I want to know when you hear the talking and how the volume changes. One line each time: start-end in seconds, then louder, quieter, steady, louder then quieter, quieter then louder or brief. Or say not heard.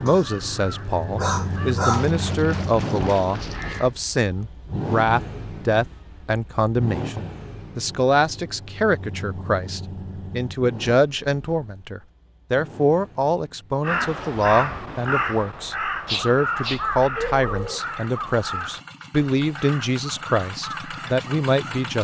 0.0-21.9 steady.